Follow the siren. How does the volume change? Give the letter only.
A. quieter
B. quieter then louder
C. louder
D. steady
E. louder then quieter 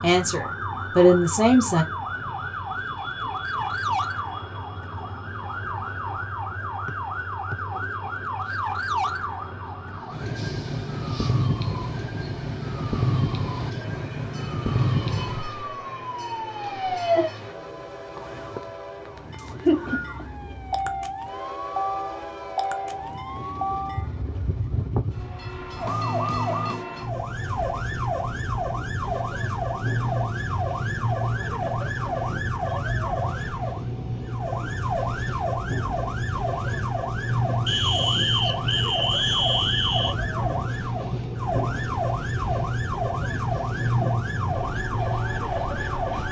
D.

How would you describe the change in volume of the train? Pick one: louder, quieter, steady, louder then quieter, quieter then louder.
louder.